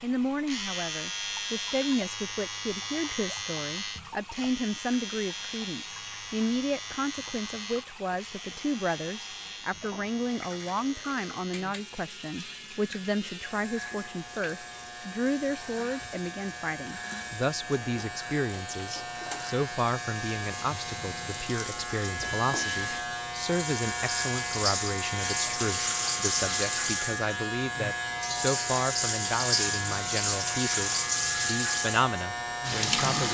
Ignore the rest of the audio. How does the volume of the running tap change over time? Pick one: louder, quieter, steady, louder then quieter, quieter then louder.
louder.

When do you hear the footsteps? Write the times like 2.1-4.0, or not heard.
not heard.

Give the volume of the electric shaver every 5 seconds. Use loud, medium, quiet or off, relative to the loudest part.
loud, medium, medium, medium, loud, loud, loud.